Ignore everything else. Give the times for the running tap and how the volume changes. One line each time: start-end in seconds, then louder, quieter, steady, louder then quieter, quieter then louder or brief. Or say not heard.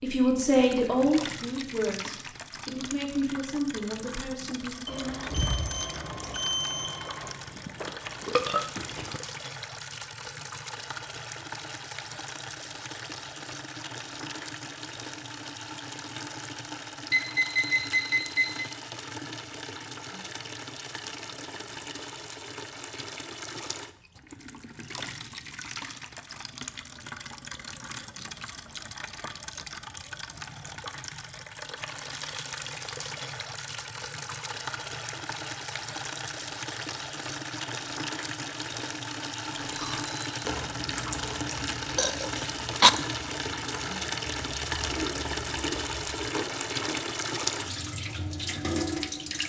0.0-49.4 louder.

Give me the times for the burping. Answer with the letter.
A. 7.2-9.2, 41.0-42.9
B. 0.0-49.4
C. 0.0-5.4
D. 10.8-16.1
A.